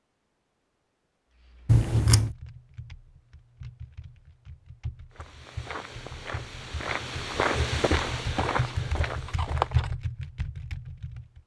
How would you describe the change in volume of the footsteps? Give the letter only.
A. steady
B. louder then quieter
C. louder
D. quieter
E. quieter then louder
B.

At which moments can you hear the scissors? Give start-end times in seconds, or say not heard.
1.6-2.3, 8.1-9.9.